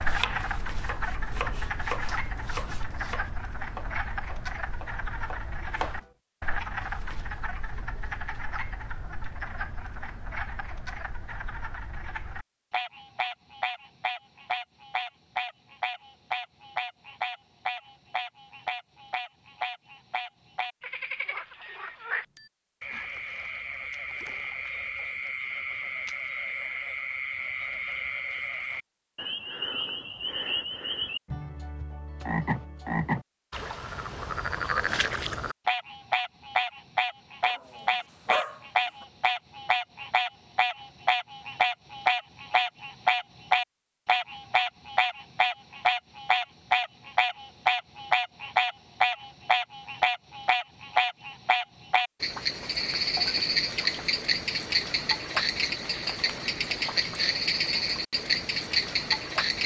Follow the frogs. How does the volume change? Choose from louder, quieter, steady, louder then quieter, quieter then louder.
louder.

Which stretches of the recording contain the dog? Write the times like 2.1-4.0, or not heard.
37.4-39.0.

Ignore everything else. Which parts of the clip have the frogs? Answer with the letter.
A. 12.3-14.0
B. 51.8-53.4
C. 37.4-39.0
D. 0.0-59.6
D.